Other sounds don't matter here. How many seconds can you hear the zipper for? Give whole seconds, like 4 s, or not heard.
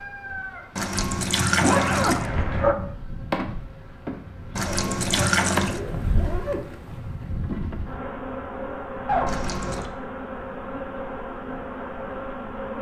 4 s.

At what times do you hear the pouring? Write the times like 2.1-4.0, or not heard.
0.8-2.3, 4.5-5.8, 9.2-9.9.